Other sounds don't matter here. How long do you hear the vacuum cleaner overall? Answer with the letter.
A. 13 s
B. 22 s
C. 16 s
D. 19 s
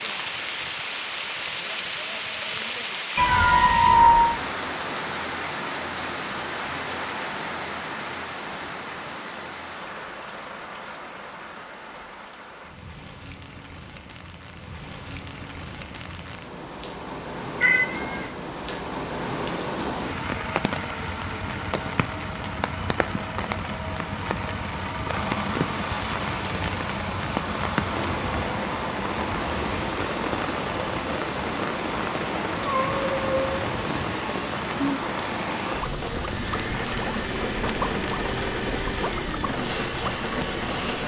C.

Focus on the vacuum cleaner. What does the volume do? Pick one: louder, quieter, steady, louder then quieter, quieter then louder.
steady.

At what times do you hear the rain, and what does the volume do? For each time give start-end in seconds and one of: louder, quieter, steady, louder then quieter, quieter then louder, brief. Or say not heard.
0.0-41.0 quieter then louder.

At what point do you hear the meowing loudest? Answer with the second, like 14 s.
4 s.